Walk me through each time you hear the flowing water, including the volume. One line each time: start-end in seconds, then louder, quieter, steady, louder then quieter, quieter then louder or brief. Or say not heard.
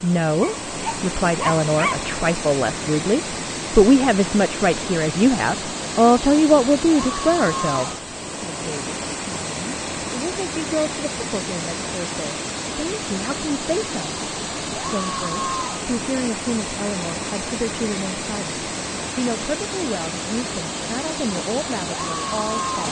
0.0-22.8 steady.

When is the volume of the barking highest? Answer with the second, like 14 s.
2 s.